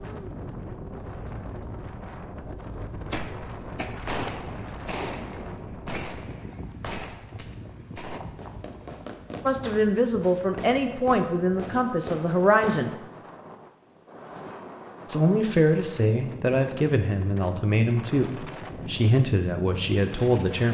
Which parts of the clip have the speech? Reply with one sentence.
The speech can be heard from 9.4 to 12.9 s and from 15.1 to 20.7 s.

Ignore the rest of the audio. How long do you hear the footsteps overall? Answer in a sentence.
The footsteps can't be heard in this clip.